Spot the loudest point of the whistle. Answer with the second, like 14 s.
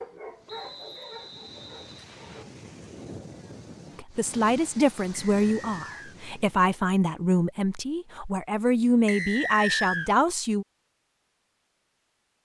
10 s.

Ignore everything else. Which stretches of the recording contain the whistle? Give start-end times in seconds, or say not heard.
0.5-2.5, 5.3-6.2, 9.1-10.1.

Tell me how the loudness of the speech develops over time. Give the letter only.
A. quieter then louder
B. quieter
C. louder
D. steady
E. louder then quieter
D.